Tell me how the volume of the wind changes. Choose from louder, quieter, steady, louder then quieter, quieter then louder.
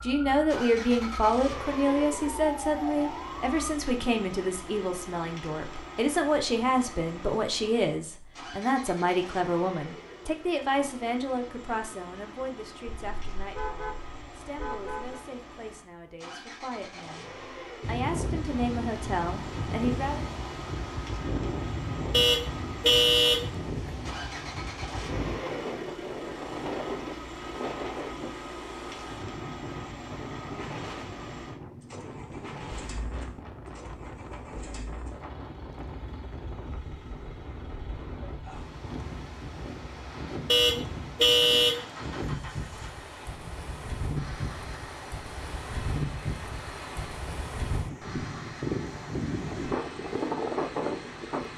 quieter then louder.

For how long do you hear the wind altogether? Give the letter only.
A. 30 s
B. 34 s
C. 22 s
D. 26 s
B.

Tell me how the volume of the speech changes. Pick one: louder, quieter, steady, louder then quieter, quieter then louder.
quieter then louder.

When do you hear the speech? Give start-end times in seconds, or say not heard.
0.0-20.2.